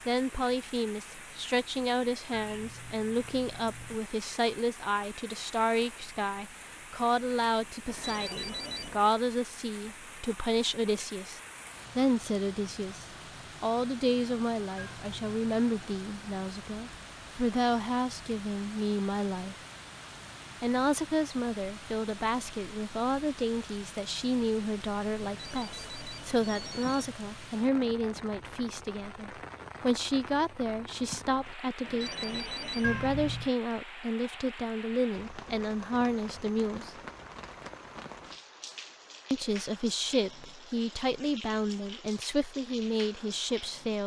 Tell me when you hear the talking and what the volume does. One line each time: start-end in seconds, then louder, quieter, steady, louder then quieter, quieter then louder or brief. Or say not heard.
0.1-19.6 steady
20.6-37.0 steady
39.3-44.0 steady.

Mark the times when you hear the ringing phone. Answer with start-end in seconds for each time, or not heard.
7.8-9.1, 25.2-27.1, 31.8-33.0.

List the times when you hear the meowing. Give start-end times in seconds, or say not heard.
2.3-4.0, 14.8-15.4, 32.8-33.5.